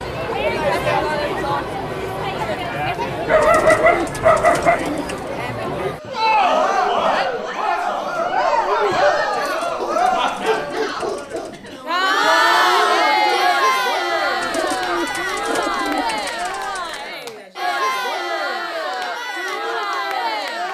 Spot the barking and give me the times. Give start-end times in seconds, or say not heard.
3.2-4.8, 9.8-11.6, 14.1-15.4.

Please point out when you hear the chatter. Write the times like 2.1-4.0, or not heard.
0.0-20.6.